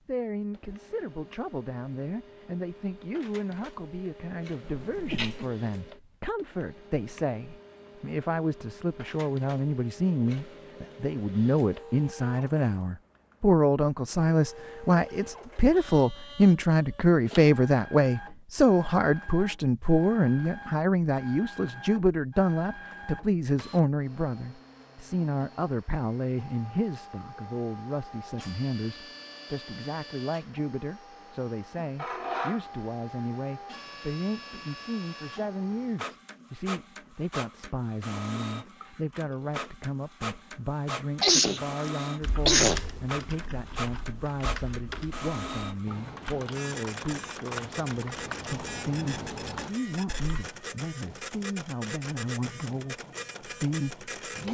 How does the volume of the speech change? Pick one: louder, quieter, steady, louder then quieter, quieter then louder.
louder then quieter.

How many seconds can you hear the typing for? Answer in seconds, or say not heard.
9 s.